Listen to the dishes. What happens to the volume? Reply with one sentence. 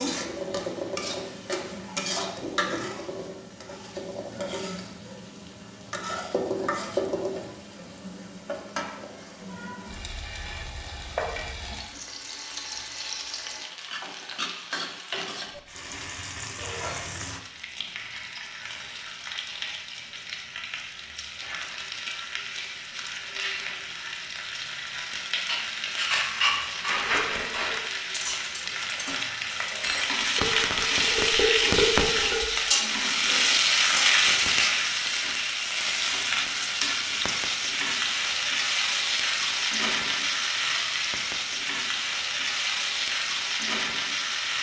The loudness of the dishes goes up.